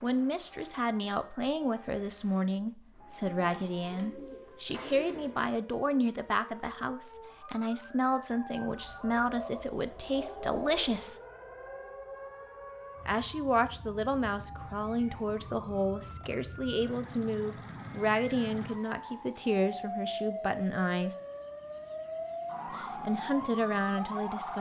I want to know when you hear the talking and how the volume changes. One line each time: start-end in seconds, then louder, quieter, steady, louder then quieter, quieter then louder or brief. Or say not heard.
0.0-11.2 steady
13.1-21.1 steady
22.7-24.5 brief.